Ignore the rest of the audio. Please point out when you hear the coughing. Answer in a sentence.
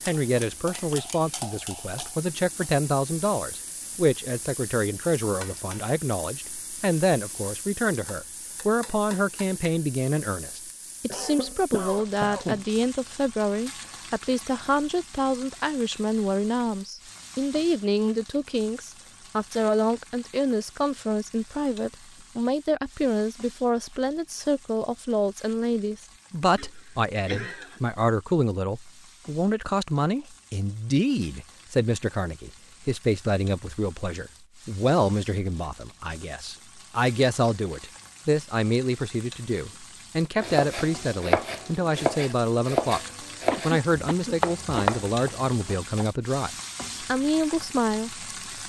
You can hear the coughing from 11.1 to 12.7 s, from 26.6 to 27.8 s and from 43.5 to 44.9 s.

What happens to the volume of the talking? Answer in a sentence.
The loudness of the talking stays about the same.